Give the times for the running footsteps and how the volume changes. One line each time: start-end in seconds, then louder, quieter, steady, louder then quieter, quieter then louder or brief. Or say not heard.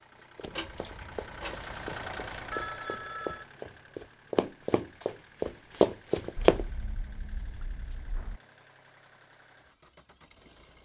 0.1-6.7 louder.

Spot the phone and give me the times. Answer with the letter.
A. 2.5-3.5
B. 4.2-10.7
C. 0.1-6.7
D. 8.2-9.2
A.